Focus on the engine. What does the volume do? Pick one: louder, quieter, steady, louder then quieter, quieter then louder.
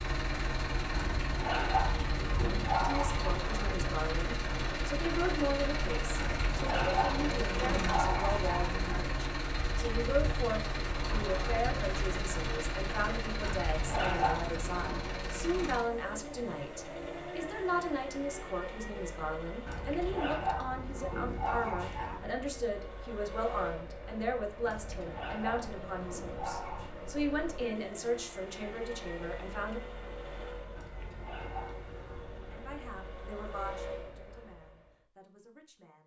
quieter.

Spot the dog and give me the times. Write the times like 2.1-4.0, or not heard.
0.9-3.3, 6.2-9.1, 13.4-15.1, 19.6-22.3, 24.6-26.9, 30.8-32.3.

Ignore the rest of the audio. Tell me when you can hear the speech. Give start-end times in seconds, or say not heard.
2.8-29.8, 32.5-36.0.